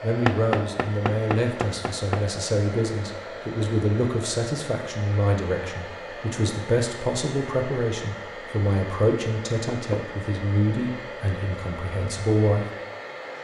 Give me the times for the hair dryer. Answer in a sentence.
You can hear the hair dryer from 0.0 to 13.3 s.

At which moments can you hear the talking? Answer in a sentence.
The talking can be heard from 0.0 to 12.7 s.